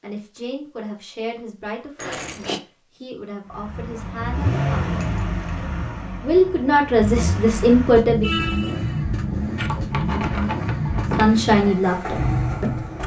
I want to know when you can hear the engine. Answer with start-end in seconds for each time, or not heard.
3.5-13.0.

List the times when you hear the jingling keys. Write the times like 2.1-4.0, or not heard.
1.9-2.6, 5.0-5.7, 9.6-11.4.